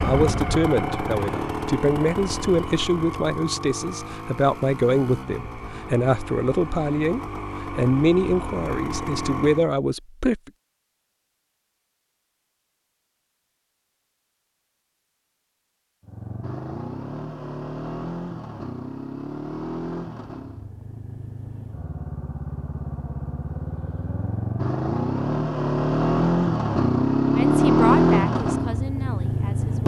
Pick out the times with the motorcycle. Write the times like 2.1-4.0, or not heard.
0.0-9.7, 16.0-29.8.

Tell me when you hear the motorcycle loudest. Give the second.
28 s.